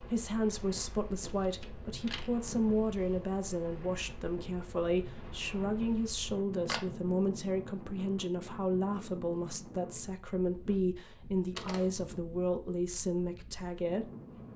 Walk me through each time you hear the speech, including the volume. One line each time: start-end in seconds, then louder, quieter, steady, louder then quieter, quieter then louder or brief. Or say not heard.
0.0-14.1 steady.